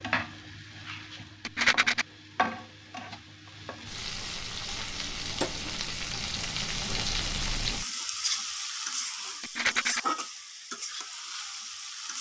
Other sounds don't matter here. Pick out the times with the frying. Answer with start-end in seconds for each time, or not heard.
0.0-12.1.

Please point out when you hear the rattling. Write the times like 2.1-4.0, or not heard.
1.4-2.0, 9.4-10.0.